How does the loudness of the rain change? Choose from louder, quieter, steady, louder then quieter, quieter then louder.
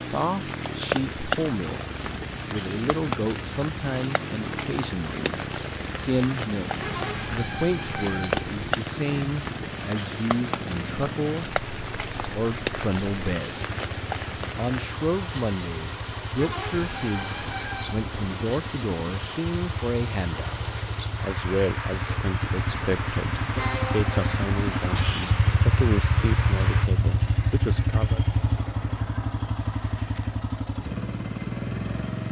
steady.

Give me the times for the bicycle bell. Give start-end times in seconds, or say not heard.
not heard.